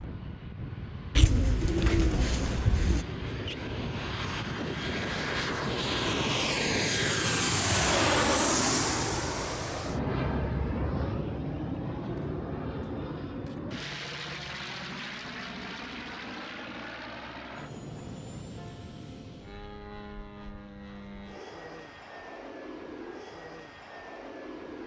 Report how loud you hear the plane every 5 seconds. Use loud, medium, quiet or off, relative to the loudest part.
medium, loud, medium, quiet, quiet.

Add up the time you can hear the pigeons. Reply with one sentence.
You can hear the pigeons for 2 seconds altogether.